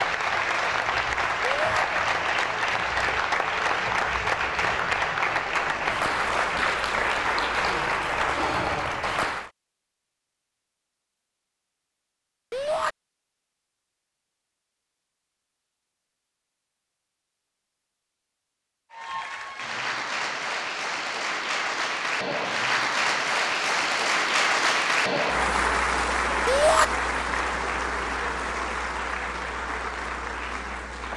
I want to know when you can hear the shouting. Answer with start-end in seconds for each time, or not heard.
1.4-1.9, 12.5-12.9, 26.4-26.9.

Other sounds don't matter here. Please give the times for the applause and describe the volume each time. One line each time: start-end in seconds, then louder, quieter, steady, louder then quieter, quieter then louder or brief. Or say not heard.
0.0-9.5 steady
18.9-31.1 louder then quieter.